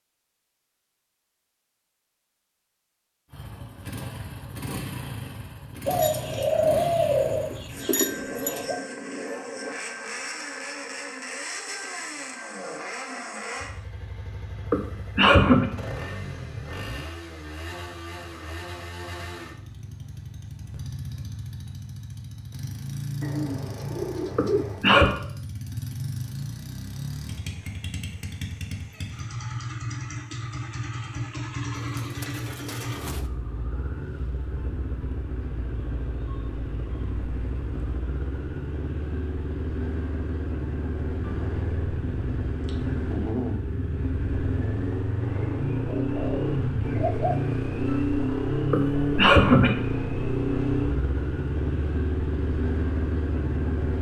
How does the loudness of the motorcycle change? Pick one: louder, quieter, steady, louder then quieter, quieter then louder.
louder.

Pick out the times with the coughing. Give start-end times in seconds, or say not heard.
14.7-15.7, 24.4-25.1, 48.7-49.7.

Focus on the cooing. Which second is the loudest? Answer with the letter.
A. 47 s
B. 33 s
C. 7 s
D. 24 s
C.